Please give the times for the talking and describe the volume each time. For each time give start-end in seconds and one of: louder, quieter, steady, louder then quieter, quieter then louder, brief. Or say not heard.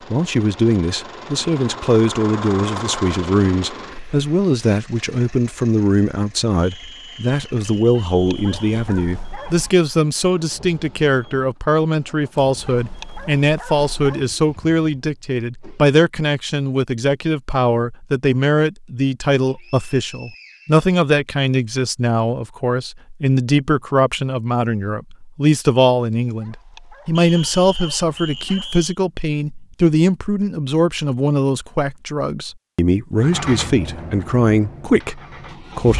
0.1-35.9 steady.